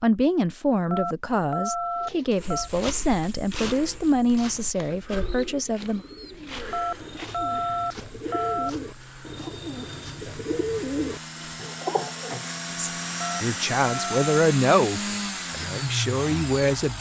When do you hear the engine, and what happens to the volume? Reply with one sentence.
You can hear the engine from 6.6 to 16.9 s, getting louder.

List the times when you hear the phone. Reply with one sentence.
The phone can be heard from 0.9 to 2.7 s, from 6.7 to 8.7 s and from 13.2 to 14.4 s.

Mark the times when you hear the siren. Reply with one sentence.
You can't hear the siren here.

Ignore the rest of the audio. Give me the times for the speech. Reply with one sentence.
The speech can be heard from 0.0 to 6.0 s and from 12.8 to 16.9 s.